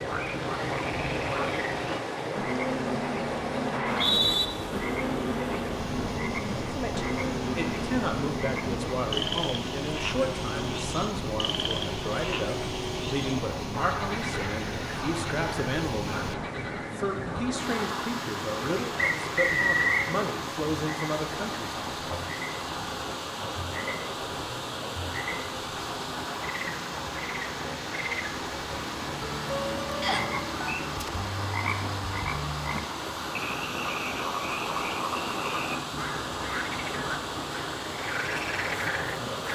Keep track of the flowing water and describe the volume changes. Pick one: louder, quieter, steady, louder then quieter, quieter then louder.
steady.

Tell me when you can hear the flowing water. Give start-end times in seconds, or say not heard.
0.0-39.5.